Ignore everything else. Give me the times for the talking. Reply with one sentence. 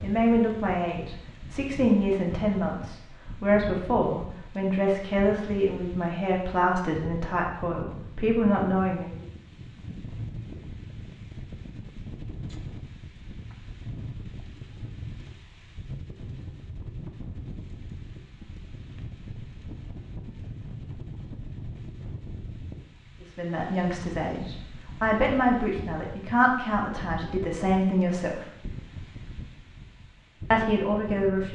You can hear the talking from 0.0 to 9.2 s, from 23.2 to 28.4 s and from 30.5 to 31.5 s.